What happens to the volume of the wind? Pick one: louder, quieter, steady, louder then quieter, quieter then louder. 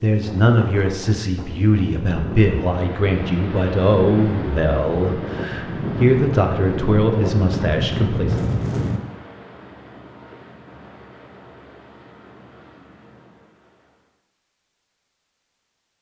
louder.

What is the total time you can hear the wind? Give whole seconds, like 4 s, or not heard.
9 s.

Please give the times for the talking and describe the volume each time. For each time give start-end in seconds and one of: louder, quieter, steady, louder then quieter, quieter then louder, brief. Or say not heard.
0.0-8.4 steady.